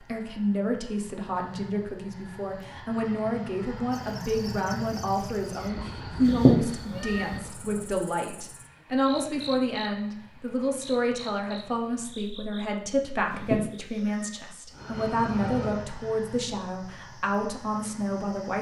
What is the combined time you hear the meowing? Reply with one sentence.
You can hear the meowing for 2 seconds altogether.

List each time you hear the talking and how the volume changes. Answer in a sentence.
The talking can be heard from 0.0 to 18.5 s, at a steady volume.